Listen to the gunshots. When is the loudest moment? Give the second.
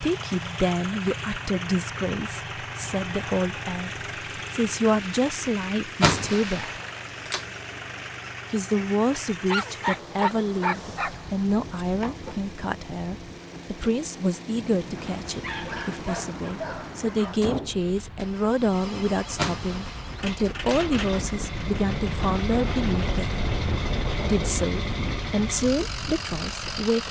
6 s.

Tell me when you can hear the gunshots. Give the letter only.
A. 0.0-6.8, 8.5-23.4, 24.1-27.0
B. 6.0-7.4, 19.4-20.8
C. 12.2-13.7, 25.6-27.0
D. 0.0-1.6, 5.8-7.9
B.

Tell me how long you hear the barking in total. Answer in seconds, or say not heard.
4 s.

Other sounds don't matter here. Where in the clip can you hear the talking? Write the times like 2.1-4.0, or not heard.
0.0-6.8, 8.5-23.4, 24.1-27.0.